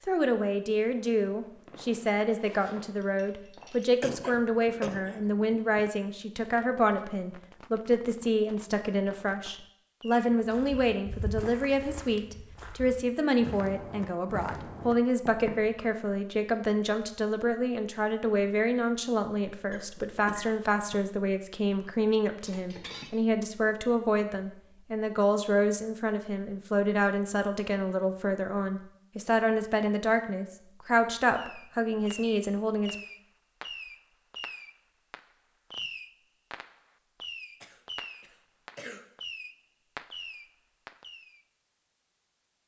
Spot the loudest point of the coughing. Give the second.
5 s.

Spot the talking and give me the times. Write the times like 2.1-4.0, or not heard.
0.1-33.0.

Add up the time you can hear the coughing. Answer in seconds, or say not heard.
4 s.